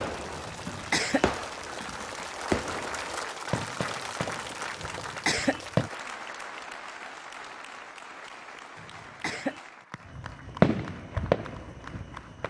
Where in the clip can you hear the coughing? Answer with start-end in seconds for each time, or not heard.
0.5-1.3, 4.8-5.6, 8.8-9.6.